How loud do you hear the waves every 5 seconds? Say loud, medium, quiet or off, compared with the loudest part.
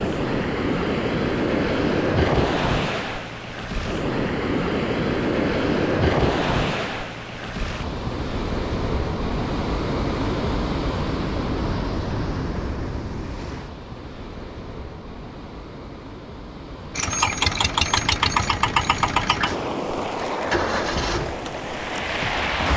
loud, loud, medium, medium, loud.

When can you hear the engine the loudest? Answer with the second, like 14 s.
18 s.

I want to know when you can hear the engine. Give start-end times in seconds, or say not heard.
16.9-22.7.